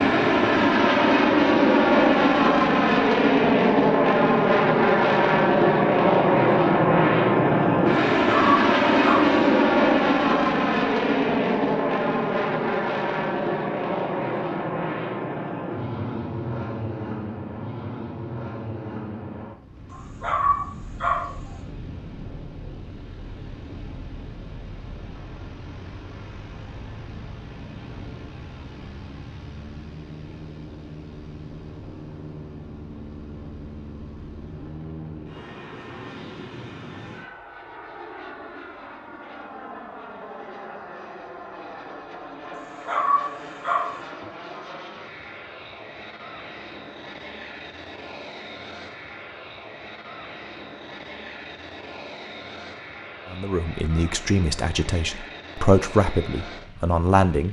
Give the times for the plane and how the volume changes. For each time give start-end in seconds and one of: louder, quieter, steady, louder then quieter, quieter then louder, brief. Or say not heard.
0.0-57.4 quieter.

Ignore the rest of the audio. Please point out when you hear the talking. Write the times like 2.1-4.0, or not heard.
53.3-57.4.